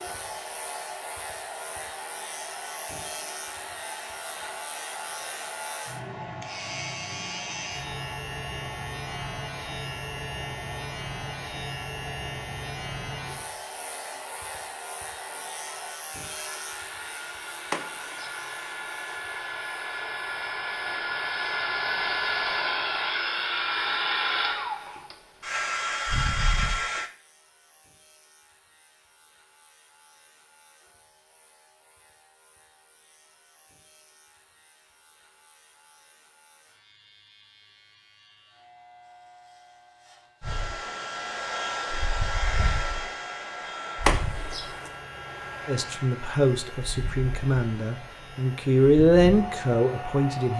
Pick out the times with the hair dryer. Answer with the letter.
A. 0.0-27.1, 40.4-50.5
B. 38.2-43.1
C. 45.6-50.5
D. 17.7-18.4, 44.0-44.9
A.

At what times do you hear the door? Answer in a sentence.
You can hear the door from 17.7 to 18.4 s and from 44.0 to 44.9 s.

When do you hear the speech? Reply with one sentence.
You can hear the speech from 45.6 to 50.5 s.